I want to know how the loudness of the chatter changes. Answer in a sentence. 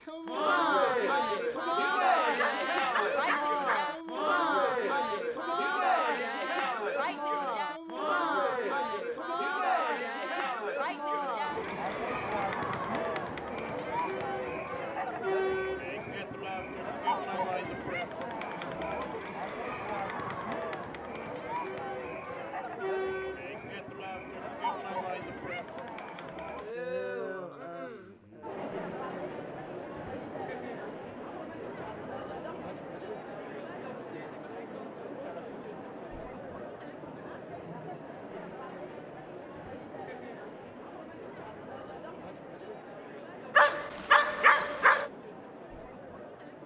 The loudness of the chatter goes down.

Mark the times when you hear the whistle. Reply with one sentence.
The whistle can't be heard in this clip.